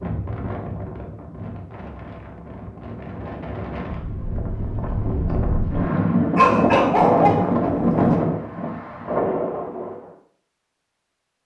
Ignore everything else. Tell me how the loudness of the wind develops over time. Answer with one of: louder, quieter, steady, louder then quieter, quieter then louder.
louder.